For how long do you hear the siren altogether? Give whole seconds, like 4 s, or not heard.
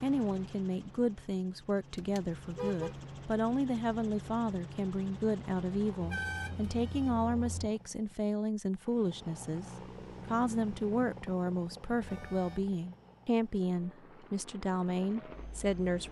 not heard.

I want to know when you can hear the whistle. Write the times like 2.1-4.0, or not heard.
not heard.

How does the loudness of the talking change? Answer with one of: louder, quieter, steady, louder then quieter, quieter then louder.
steady.